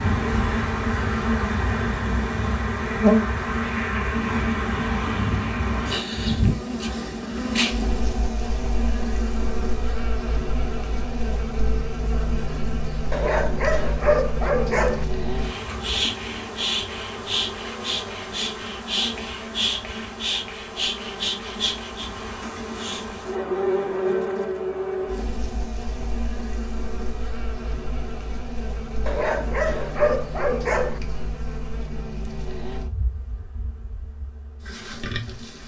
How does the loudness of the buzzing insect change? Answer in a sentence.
The loudness of the buzzing insect goes down.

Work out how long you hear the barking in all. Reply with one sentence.
You can hear the barking for 4 seconds altogether.